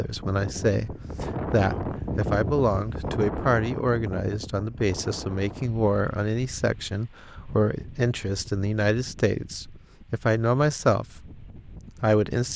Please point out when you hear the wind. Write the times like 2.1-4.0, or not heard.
0.0-12.5.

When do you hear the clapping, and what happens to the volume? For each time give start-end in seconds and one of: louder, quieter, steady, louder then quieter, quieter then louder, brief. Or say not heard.
not heard.